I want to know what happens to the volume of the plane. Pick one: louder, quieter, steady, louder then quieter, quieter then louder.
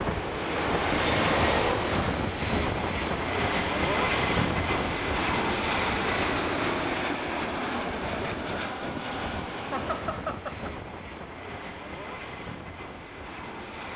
quieter.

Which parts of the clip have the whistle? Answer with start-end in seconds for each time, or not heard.
not heard.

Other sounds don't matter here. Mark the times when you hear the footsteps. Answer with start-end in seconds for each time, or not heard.
not heard.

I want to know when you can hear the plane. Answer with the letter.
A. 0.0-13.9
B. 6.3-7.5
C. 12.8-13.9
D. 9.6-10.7
A.